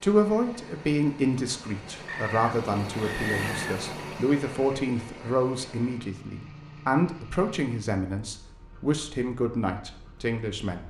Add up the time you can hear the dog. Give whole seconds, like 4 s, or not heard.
not heard.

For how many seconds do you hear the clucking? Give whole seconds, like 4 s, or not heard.
2 s.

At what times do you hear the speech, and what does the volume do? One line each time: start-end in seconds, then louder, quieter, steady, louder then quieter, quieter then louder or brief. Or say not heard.
0.0-10.8 steady.